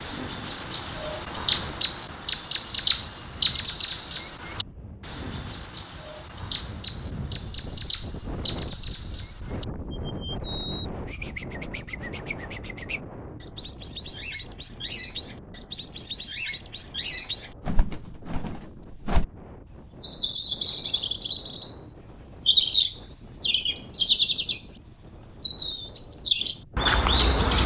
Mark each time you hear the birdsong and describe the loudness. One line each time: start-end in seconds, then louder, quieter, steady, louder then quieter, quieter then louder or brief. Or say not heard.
0.0-27.6 quieter then louder.